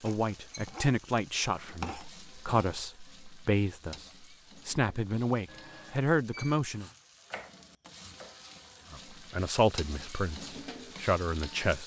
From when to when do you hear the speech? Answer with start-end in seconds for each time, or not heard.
0.0-6.8, 8.9-11.8.